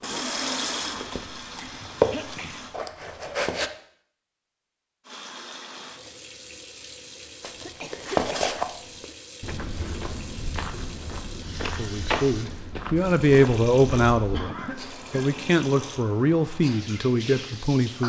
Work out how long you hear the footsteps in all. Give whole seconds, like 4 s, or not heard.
11 s.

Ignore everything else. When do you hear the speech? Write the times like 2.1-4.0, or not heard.
11.8-18.0.